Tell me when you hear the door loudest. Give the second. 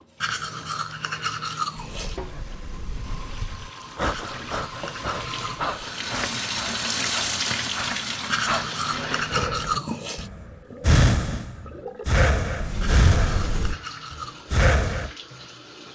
13 s.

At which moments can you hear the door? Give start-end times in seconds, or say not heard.
1.9-3.7, 12.6-13.8.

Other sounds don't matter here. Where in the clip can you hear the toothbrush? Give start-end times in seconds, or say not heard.
0.2-2.2, 4.0-6.0, 8.3-10.3, 12.8-14.4.